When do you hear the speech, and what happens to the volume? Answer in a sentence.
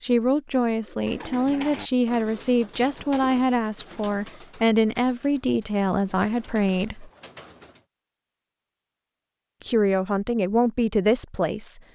You can hear the speech from 0.0 to 7.1 s, at a steady volume; and briefly from 9.6 to 11.8 s.